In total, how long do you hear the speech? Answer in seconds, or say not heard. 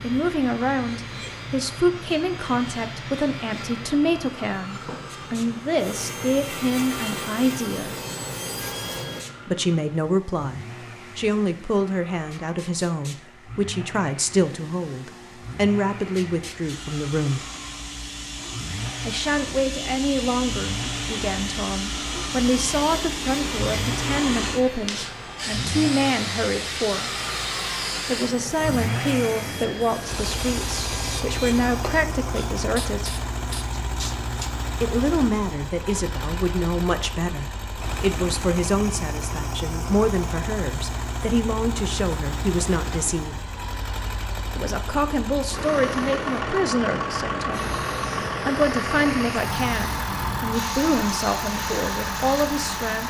46 s.